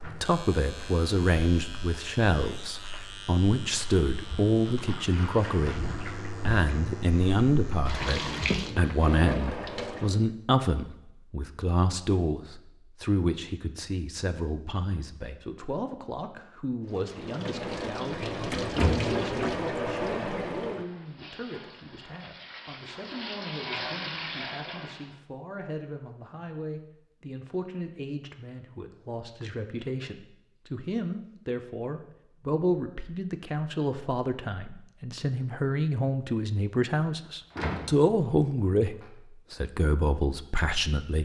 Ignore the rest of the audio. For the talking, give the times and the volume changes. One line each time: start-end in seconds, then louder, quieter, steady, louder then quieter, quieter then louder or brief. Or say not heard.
0.2-41.2 quieter then louder.